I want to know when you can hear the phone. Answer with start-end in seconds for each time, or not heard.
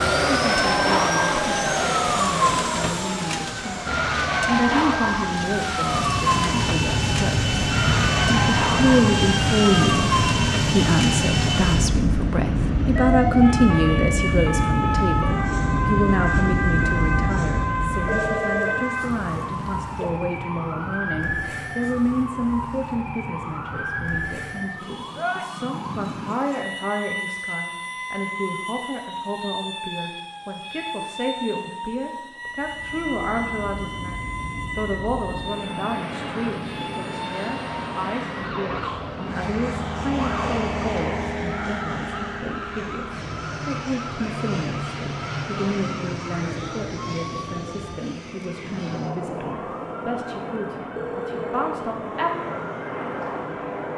18.1-20.1, 51.0-51.9.